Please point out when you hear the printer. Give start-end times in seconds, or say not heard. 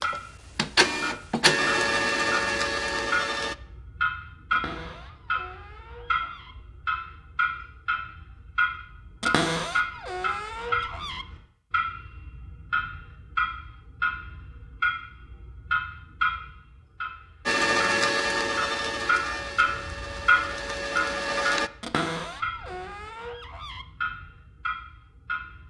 0.0-3.5, 17.4-21.7.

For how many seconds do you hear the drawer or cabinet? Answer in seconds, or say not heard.
6 s.